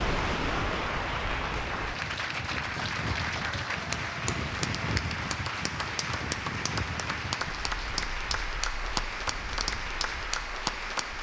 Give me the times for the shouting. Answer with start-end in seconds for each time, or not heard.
not heard.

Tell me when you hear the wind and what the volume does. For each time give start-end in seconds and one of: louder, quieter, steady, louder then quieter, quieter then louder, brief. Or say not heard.
0.0-11.1 quieter.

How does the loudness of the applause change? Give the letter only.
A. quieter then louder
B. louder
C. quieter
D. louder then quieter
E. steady
E.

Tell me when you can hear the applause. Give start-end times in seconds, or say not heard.
0.0-11.1.